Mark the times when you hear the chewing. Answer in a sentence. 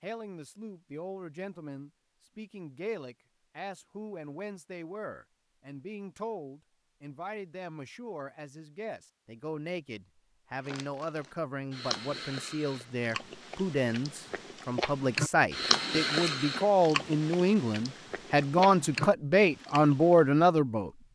The chewing can be heard from 10.6 to 20.3 s.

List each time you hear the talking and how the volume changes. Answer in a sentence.
You can hear the talking from 0.0 to 20.9 s, getting louder.